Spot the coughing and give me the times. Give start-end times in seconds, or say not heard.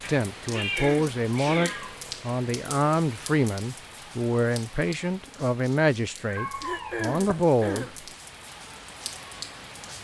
0.6-1.9, 6.5-8.0.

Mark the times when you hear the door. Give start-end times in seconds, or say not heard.
not heard.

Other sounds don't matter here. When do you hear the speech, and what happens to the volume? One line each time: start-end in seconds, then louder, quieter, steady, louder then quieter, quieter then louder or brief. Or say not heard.
0.1-7.9 steady.